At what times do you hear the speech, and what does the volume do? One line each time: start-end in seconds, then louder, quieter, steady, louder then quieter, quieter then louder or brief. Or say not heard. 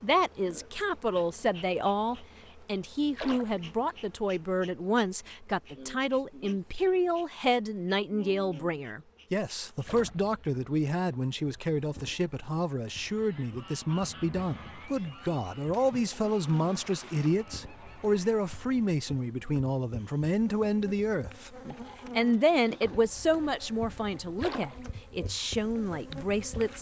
0.0-26.7 steady.